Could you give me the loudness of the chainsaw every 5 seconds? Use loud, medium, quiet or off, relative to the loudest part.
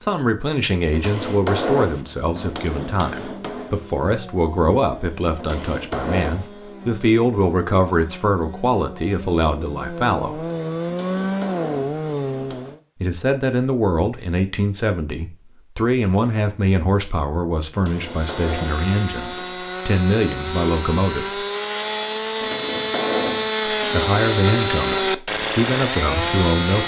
quiet, quiet, loud, medium, loud, loud.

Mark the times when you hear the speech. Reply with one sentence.
You can hear the speech from 0.0 to 10.4 s, from 13.0 to 21.4 s and from 23.9 to 26.8 s.